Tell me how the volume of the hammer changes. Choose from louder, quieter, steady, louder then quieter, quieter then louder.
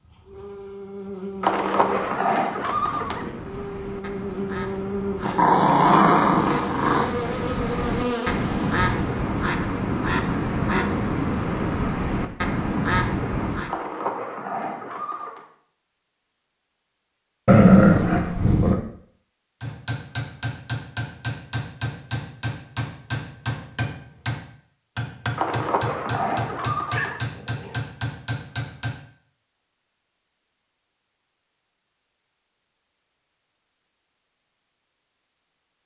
steady.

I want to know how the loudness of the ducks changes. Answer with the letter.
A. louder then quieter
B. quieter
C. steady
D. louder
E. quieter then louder
D.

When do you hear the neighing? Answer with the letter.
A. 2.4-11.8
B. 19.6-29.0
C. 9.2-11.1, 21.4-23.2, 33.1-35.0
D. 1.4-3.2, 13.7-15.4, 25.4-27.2
D.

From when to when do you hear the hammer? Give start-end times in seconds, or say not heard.
19.6-29.0.